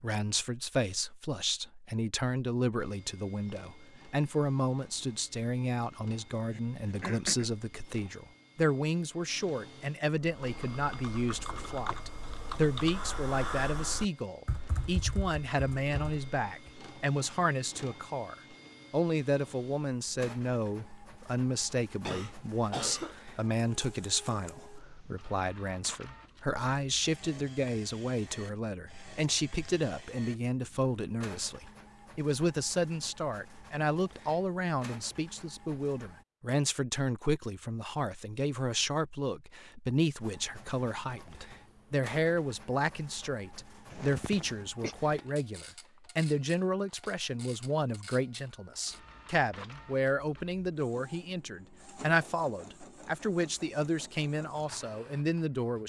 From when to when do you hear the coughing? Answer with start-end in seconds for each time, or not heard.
6.5-7.5, 22.1-23.3, 43.9-45.0.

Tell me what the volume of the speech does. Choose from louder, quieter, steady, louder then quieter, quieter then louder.
steady.